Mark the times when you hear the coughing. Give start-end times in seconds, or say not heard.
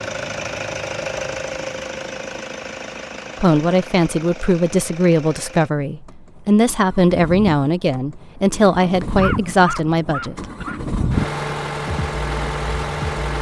9.2-10.9.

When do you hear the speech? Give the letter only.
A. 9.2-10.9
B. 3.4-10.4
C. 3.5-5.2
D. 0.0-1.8
B.